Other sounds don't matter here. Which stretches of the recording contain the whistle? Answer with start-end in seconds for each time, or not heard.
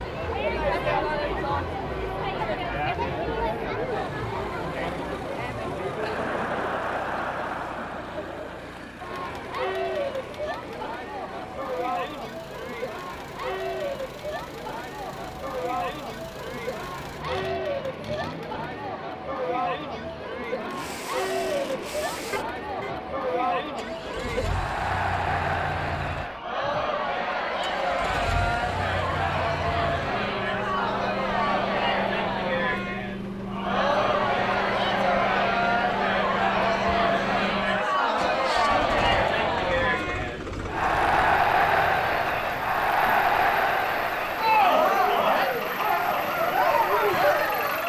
not heard.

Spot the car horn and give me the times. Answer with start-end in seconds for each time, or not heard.
22.3-22.9.